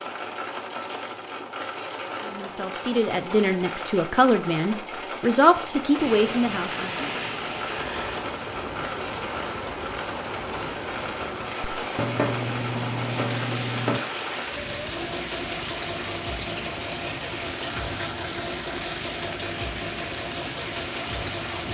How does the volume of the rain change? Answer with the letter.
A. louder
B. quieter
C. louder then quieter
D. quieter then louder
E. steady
E.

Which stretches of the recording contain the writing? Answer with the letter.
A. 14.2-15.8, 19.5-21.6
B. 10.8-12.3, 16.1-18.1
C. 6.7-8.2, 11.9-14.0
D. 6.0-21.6
C.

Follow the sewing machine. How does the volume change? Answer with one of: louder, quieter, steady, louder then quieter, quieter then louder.
steady.